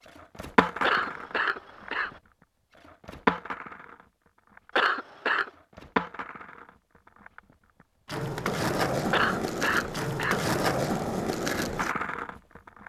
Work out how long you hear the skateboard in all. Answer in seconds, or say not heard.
13 s.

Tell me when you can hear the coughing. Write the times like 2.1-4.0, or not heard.
0.8-2.2, 4.8-5.5, 9.1-10.4.